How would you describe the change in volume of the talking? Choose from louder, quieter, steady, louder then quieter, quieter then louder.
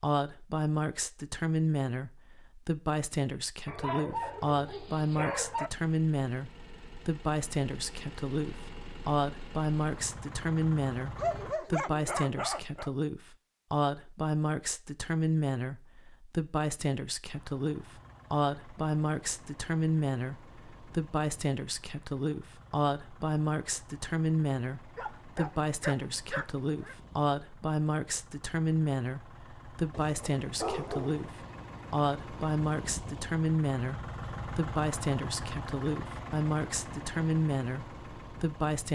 steady.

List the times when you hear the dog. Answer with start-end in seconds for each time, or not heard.
3.6-5.7, 11.2-12.9, 24.9-26.9, 29.9-31.3.